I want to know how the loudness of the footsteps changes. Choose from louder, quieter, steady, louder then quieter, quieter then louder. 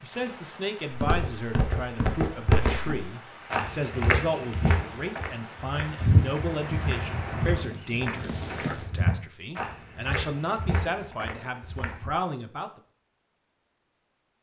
quieter.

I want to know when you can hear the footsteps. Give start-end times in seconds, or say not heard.
0.9-12.1.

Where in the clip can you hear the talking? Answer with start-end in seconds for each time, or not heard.
0.0-12.8.